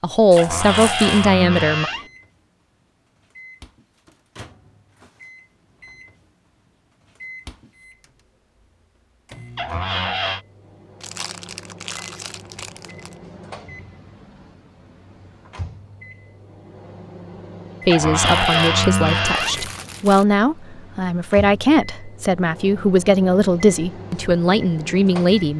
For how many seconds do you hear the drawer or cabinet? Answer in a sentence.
The drawer or cabinet can be heard for 4 seconds in total.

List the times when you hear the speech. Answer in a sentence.
The speech can be heard from 0.0 to 1.9 s and from 17.9 to 25.5 s.